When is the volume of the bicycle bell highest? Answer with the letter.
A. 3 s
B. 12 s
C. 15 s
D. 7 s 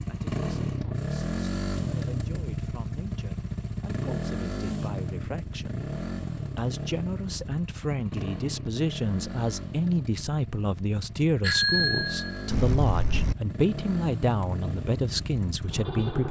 B.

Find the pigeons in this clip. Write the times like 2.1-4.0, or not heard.
not heard.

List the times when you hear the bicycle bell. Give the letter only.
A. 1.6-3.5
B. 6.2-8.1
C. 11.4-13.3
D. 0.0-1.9
C.